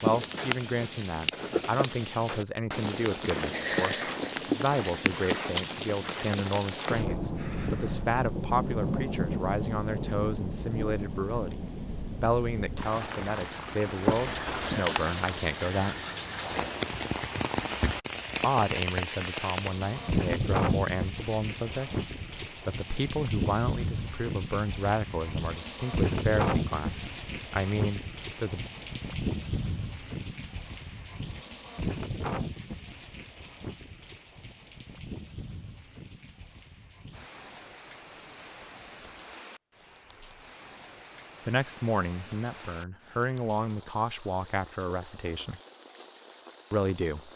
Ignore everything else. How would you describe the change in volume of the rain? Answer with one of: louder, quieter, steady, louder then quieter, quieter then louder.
quieter.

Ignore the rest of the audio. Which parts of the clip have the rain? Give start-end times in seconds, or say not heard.
0.0-47.3.